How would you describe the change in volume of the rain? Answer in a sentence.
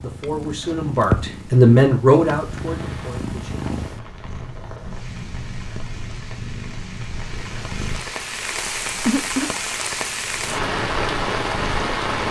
The loudness of the rain goes up.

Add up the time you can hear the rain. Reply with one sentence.
You can hear the rain for 10 seconds altogether.